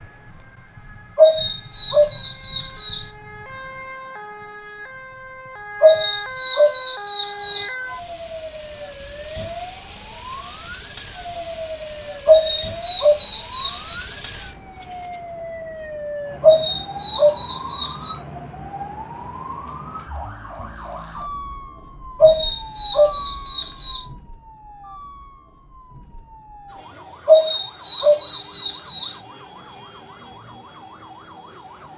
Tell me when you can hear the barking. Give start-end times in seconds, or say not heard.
1.1-3.0, 5.8-7.7, 12.2-13.9, 16.4-18.1, 22.2-24.0, 27.2-29.1.